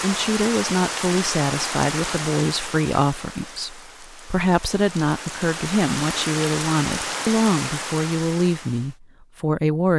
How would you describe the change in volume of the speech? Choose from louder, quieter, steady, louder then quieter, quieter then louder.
steady.